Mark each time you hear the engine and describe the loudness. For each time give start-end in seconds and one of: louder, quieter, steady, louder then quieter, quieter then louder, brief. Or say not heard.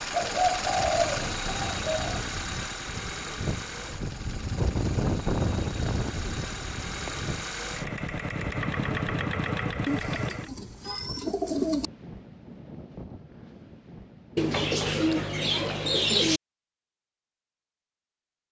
0.0-10.5 quieter then louder.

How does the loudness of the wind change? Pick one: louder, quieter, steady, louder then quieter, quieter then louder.
louder then quieter.